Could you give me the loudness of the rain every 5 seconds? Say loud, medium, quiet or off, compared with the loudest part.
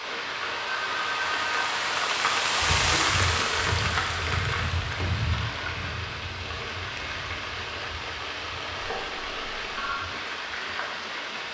loud, medium, medium.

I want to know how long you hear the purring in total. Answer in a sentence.
You can't hear the purring here.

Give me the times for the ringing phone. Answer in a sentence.
You can hear the ringing phone from 0.0 to 1.7 s and from 8.8 to 10.0 s.